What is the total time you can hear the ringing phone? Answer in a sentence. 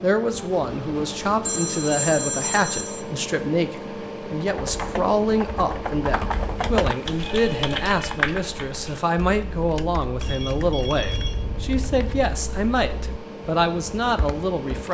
You can hear the ringing phone for 5 seconds altogether.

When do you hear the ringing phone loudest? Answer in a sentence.
The volume of the ringing phone peaks at 2 seconds.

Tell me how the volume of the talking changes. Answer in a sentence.
The volume of the talking stays about the same.